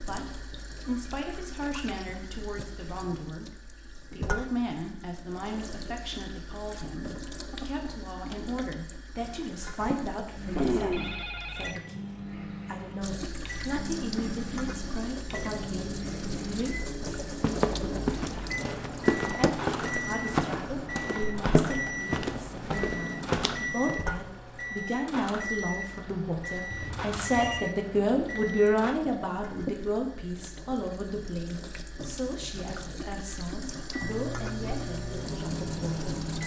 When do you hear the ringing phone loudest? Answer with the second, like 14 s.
11 s.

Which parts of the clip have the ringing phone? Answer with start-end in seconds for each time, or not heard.
10.5-11.8, 26.7-27.6.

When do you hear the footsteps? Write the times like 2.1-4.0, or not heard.
17.3-24.0.